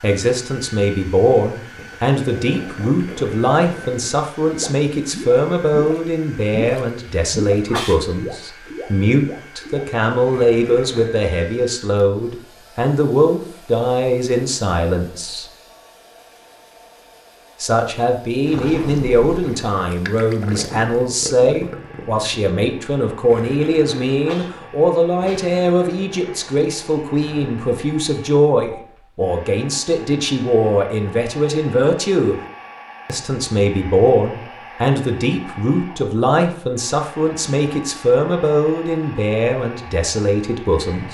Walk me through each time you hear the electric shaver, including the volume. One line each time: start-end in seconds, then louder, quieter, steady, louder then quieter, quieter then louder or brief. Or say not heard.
not heard.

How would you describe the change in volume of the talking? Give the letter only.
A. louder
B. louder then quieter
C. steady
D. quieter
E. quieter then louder
C.